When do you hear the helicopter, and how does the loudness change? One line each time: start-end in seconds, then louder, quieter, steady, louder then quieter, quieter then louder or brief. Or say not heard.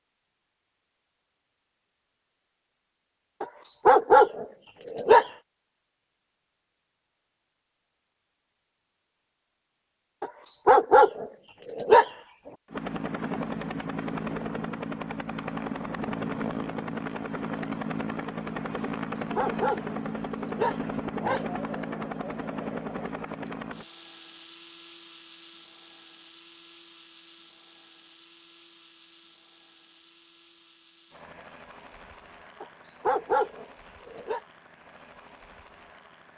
12.7-36.3 quieter.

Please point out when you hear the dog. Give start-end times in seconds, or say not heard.
3.4-5.3, 10.2-12.1, 18.9-21.4, 32.6-34.4.